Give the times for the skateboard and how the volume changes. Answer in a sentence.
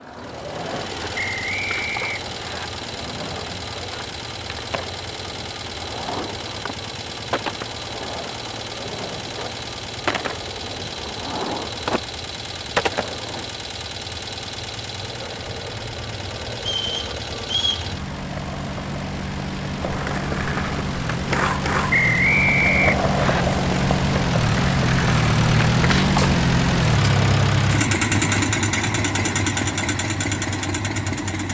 The skateboard can be heard from 0.0 to 13.5 s, getting louder; and from 15.0 to 27.6 s, getting louder.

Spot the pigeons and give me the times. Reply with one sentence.
You can't hear the pigeons here.